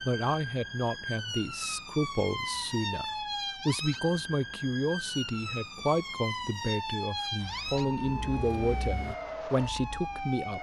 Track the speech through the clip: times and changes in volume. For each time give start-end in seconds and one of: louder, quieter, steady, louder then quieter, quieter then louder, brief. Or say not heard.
0.0-10.5 steady.